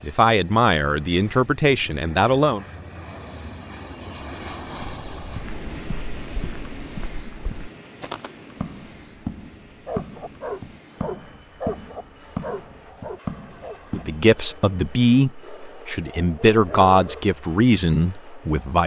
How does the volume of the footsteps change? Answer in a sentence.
The volume of the footsteps goes up.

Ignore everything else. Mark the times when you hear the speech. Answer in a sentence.
You can hear the speech from 0.0 to 2.6 s and from 13.9 to 18.8 s.